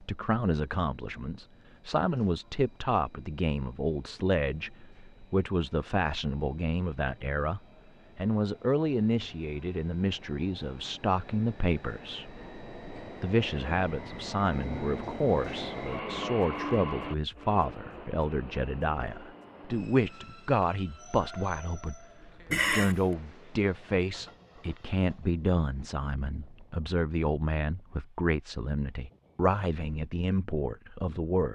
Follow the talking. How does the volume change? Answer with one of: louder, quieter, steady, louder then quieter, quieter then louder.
steady.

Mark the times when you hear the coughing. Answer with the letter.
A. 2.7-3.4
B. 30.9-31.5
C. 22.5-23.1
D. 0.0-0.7
C.